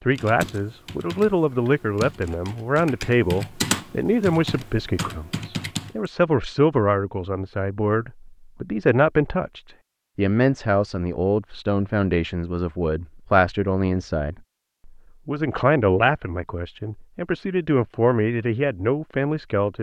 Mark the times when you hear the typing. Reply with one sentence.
You can hear the typing from 0.1 to 6.0 s.